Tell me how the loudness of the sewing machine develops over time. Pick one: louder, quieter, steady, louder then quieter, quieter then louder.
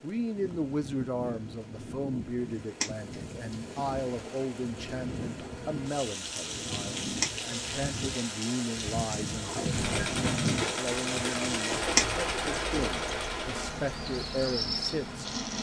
quieter.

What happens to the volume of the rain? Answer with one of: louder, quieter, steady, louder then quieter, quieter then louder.
louder.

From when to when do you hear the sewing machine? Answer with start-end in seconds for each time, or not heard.
9.3-15.5.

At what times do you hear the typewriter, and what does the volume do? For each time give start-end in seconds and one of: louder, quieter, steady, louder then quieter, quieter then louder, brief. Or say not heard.
not heard.